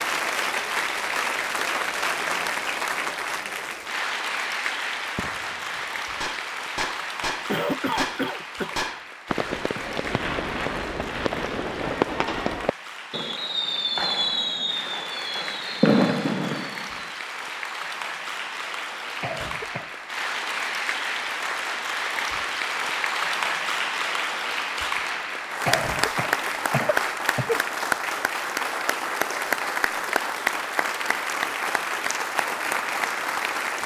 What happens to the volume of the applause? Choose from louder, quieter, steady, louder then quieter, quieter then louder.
quieter then louder.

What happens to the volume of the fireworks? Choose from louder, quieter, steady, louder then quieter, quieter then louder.
louder.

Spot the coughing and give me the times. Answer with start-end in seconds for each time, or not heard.
7.5-8.8, 19.2-19.9, 25.6-27.6.